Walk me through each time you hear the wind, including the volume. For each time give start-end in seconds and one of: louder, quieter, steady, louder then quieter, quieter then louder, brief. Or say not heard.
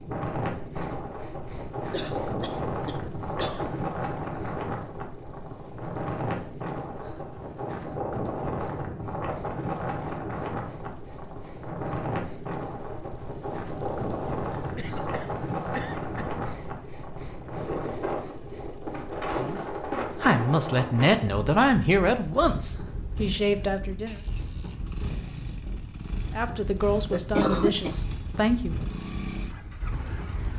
0.0-30.5 quieter.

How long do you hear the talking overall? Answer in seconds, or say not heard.
7 s.